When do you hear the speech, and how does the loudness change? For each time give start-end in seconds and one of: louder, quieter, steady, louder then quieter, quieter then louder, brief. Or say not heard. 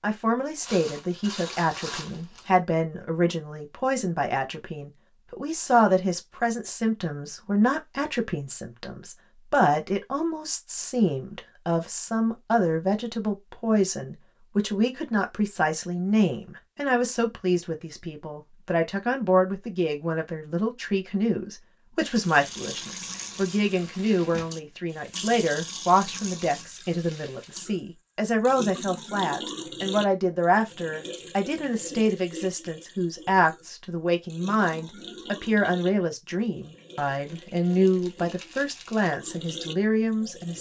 0.0-40.5 steady.